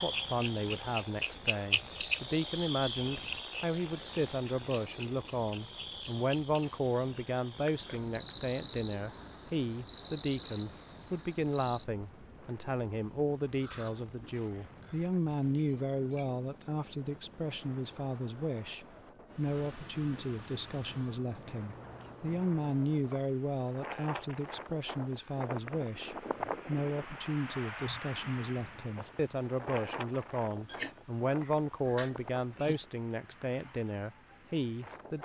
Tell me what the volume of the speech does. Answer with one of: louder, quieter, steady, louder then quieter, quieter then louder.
steady.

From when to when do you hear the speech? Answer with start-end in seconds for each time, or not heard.
0.0-35.2.